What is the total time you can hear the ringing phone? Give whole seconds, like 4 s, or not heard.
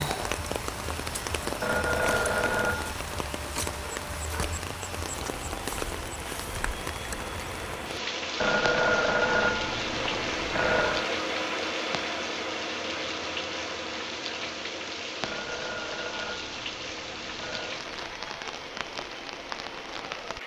7 s.